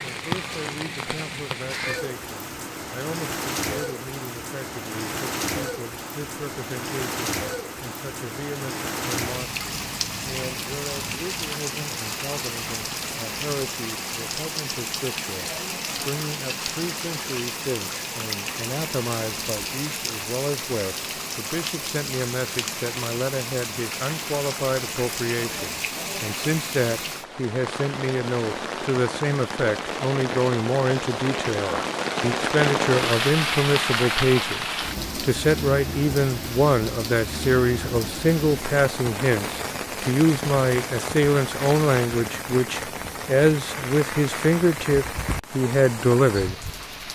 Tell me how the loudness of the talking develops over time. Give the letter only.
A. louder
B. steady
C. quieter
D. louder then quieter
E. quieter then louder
A.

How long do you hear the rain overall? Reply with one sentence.
You can hear the rain for 47 seconds altogether.